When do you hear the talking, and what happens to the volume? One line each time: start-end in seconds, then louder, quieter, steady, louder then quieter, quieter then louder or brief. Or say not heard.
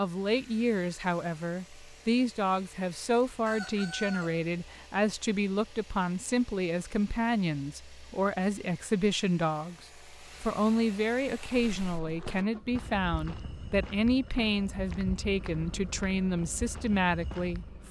0.0-17.8 steady.